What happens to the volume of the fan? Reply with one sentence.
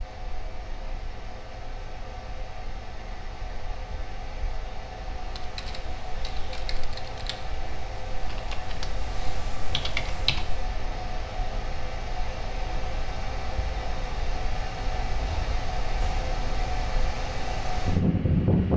The loudness of the fan goes up.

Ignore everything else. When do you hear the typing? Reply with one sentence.
You can hear the typing from 5.2 to 10.7 s.